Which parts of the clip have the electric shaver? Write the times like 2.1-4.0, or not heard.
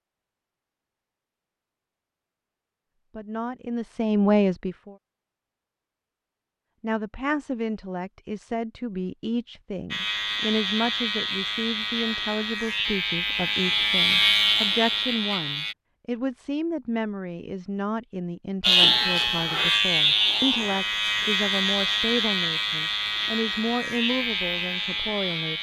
9.9-15.8, 18.6-25.5.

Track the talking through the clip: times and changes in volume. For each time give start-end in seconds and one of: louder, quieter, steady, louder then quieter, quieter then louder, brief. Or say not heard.
3.1-5.0 brief
6.8-25.5 steady.